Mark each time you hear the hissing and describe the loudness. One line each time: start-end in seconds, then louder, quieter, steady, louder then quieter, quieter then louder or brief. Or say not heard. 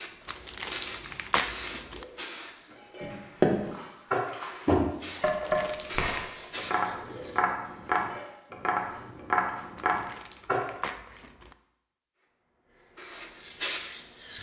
0.0-7.5 quieter then louder
12.2-14.3 brief.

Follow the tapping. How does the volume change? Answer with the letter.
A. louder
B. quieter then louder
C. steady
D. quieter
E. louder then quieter
D.